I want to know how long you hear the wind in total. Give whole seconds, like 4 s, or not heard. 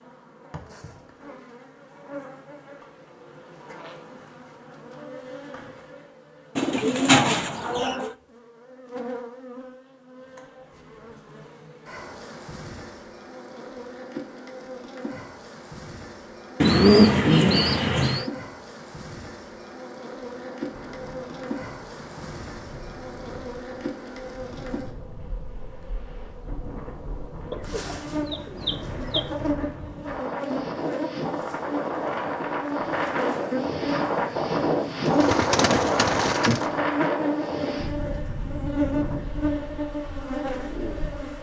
21 s.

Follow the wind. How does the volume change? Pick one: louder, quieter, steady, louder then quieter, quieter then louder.
louder then quieter.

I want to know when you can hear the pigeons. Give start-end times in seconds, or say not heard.
6.5-8.1, 16.6-18.2, 27.5-29.2, 35.0-36.7.